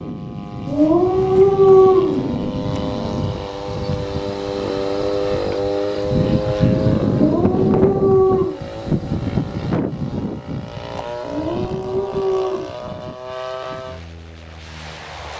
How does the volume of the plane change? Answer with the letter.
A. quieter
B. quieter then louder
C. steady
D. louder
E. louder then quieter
E.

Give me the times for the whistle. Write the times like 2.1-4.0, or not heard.
not heard.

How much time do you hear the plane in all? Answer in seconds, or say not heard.
15 s.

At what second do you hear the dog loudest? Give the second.
2 s.